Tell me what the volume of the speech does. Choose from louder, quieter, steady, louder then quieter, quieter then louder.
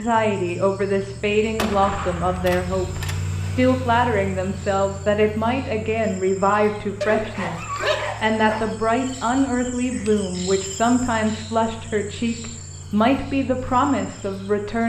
steady.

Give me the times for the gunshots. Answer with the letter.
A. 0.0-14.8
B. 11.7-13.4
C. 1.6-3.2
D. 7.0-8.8
C.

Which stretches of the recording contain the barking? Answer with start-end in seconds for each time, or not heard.
7.0-8.8.